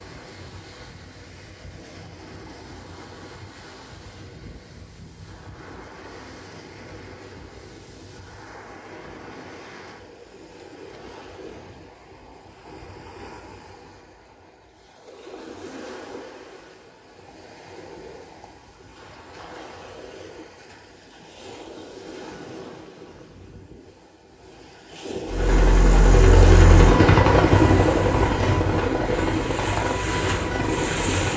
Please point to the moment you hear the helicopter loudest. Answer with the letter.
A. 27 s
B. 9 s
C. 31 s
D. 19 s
A.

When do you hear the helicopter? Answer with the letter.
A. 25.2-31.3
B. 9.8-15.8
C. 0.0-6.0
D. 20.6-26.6
A.